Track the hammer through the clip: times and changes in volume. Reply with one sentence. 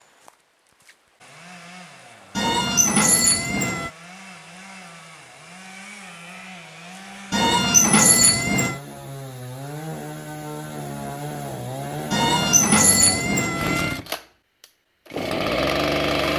The hammer can't be heard in this clip.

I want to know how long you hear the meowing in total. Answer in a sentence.
You can hear the meowing for 5 seconds altogether.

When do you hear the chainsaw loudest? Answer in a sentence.
The volume of the chainsaw peaks at 16 seconds.